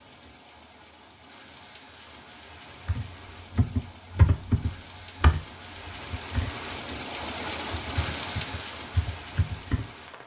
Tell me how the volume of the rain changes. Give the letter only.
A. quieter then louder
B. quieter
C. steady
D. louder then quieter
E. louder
E.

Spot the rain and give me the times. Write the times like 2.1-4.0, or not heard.
0.0-10.2.